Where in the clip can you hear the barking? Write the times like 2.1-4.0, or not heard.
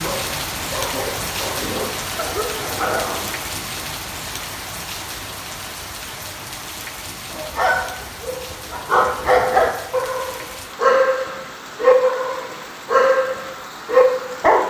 0.0-3.5, 7.3-14.6.